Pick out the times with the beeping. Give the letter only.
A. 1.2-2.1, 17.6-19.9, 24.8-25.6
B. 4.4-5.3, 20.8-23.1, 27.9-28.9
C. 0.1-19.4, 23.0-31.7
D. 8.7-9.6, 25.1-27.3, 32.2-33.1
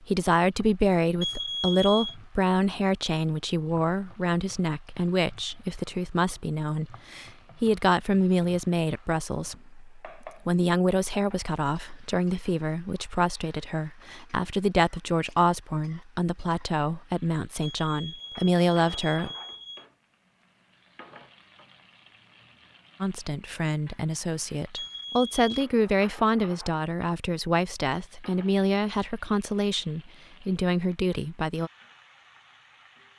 A.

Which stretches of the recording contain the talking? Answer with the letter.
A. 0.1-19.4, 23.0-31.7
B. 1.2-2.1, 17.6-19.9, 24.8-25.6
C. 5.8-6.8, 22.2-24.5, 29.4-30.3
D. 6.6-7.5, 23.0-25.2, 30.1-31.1
A.